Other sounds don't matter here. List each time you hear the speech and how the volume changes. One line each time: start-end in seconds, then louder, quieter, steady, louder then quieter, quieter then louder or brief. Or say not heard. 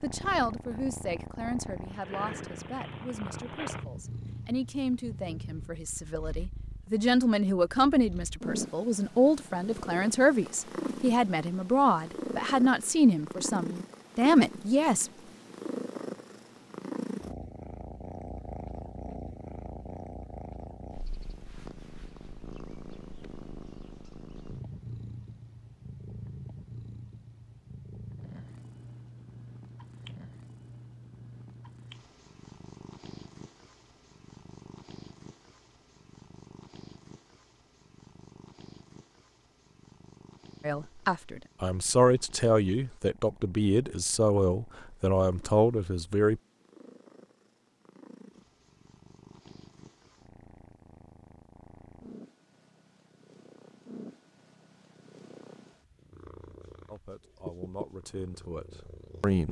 0.0-15.1 louder
40.6-46.4 steady
56.9-59.4 brief.